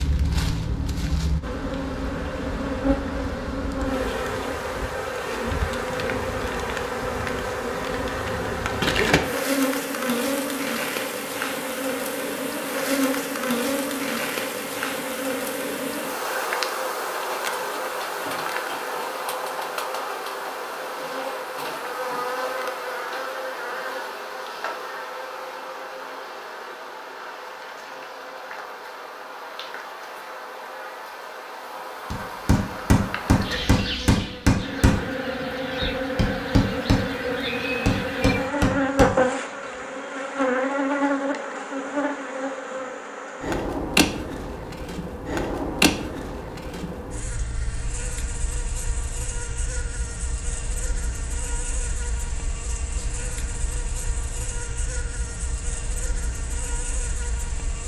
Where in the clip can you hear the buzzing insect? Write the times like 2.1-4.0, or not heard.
0.0-57.8.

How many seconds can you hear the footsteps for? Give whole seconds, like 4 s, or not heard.
not heard.